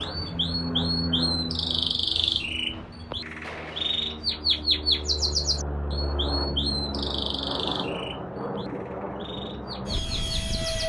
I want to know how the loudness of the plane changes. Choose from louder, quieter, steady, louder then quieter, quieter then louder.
quieter then louder.